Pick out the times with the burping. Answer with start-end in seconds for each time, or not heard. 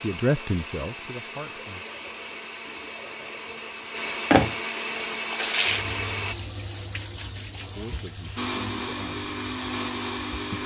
not heard.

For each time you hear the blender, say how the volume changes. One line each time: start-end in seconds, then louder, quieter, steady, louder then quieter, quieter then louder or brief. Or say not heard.
0.0-6.3 louder
8.3-10.6 brief.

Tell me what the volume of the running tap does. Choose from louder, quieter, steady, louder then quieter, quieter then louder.
louder then quieter.